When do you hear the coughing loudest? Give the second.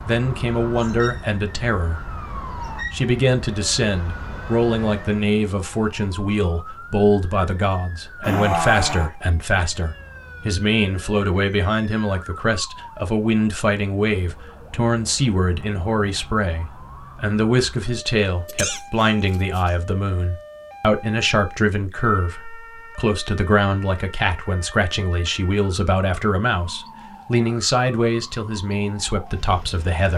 9 s.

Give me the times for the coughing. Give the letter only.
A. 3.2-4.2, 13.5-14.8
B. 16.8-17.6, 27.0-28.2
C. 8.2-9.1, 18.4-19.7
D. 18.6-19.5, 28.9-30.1
C.